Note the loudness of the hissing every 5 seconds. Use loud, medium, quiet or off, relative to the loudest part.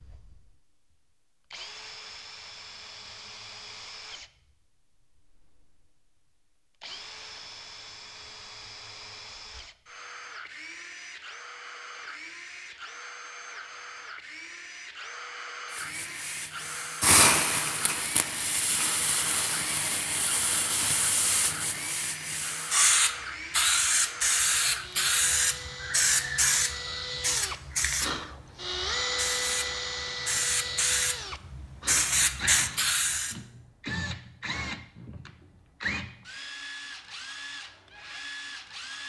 off, off, off, loud, loud, loud, loud, off.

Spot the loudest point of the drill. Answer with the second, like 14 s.
29 s.